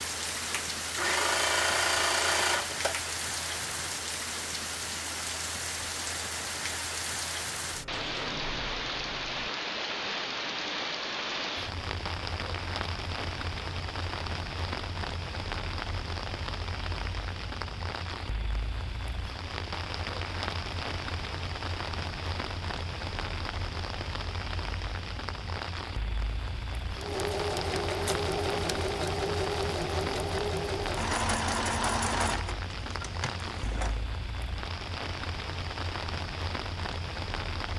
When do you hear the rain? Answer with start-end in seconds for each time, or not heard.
0.0-37.7.